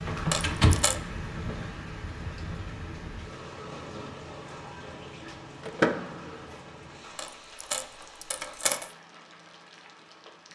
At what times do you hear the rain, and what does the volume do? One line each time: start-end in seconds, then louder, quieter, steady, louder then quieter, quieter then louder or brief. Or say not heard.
0.0-10.5 quieter.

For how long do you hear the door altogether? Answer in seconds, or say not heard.
2 s.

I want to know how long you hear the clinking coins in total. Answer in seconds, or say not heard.
3 s.